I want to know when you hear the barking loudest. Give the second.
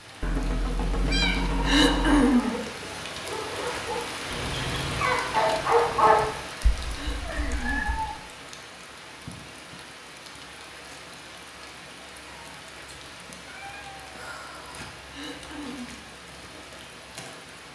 6 s.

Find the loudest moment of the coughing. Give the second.
2 s.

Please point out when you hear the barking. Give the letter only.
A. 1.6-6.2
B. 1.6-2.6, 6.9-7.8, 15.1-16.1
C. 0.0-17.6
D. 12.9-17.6
A.